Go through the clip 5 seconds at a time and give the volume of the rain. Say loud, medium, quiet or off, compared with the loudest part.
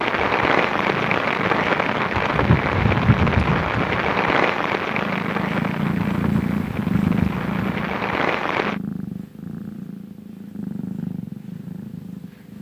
loud, medium, off.